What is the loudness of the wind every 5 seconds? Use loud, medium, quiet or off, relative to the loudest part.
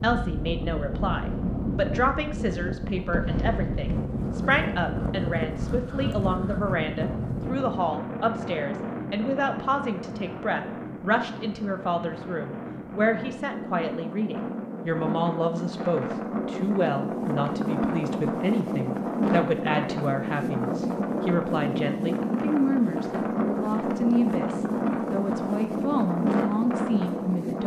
loud, loud, medium, loud, loud, loud.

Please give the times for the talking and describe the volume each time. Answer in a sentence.
You can hear the talking from 0.0 to 27.6 s, at a steady volume.